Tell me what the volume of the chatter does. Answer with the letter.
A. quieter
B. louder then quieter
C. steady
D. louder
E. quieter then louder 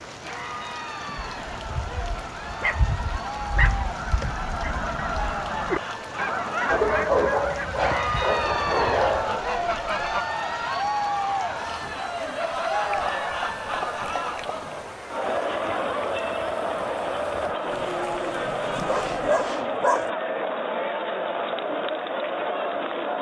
D.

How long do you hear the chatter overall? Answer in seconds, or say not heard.
23 s.